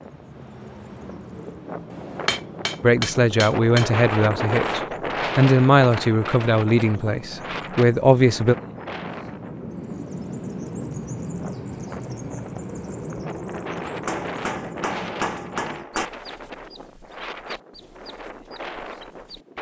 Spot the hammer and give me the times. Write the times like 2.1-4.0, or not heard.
1.9-3.9, 14.1-16.1.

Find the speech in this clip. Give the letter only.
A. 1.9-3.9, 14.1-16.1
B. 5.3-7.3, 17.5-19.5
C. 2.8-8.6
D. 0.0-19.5
C.